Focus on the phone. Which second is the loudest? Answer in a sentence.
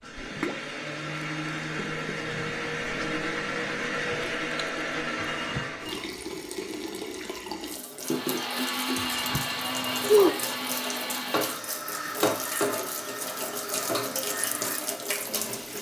The volume of the phone peaks at 10 seconds.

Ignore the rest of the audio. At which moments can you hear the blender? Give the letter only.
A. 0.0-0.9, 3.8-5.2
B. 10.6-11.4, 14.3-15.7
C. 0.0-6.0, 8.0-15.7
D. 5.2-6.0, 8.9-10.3
C.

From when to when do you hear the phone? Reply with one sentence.
The phone can be heard from 5.2 to 6.0 s and from 8.9 to 10.3 s.